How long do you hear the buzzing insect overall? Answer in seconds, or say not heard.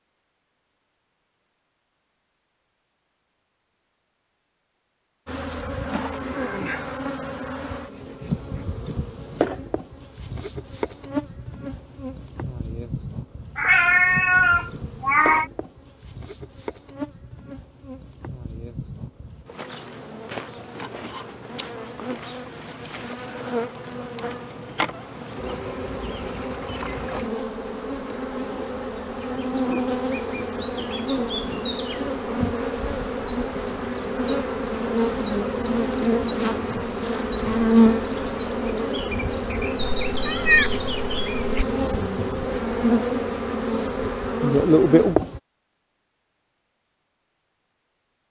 40 s.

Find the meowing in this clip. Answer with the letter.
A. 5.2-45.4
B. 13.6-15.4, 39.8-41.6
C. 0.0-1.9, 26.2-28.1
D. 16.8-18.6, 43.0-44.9
B.